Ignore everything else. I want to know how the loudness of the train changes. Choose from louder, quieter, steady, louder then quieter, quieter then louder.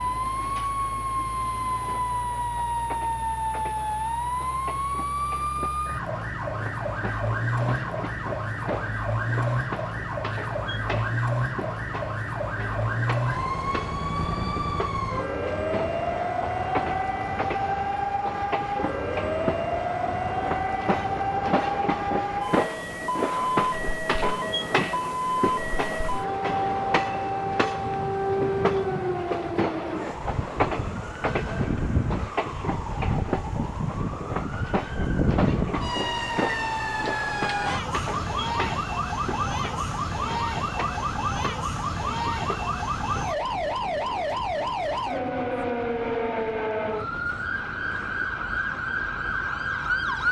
louder then quieter.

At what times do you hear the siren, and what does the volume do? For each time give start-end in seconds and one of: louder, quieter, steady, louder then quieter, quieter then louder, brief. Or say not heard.
0.0-50.2 steady.